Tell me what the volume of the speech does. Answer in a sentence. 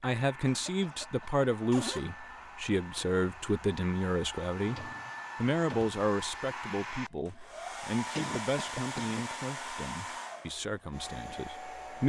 The loudness of the speech goes down.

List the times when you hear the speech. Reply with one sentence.
You can hear the speech from 0.0 to 12.0 s.